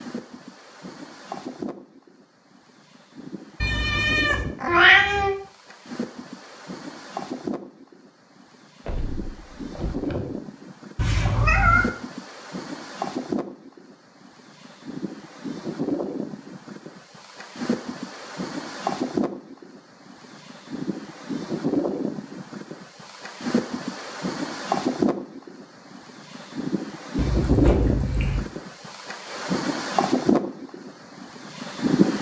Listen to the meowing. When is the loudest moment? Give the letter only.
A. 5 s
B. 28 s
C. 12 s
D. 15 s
A.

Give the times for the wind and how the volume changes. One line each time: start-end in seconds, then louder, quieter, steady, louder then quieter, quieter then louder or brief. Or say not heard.
0.0-32.1 louder.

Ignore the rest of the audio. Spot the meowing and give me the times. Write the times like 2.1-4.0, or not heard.
3.6-5.3, 10.9-11.9, 27.1-28.4.